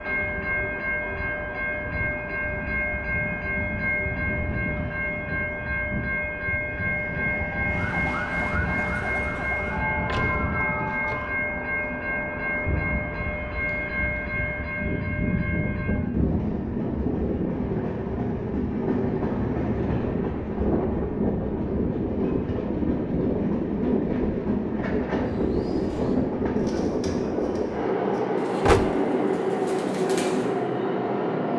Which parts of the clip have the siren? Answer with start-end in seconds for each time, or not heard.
7.7-11.4.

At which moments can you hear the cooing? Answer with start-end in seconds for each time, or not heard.
25.1-30.8.